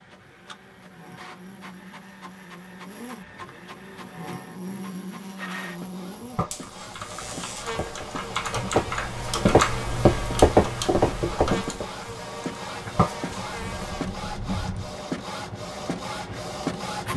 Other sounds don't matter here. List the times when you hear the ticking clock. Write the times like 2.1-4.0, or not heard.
not heard.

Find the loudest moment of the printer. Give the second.
17 s.